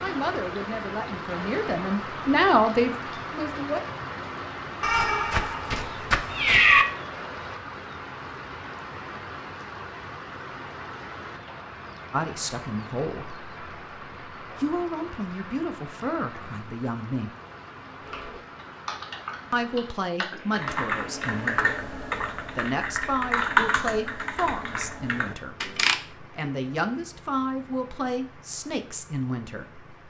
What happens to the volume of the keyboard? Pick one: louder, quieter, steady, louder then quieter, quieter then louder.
louder then quieter.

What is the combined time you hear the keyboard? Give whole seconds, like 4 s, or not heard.
8 s.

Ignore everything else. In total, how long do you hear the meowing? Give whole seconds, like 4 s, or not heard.
2 s.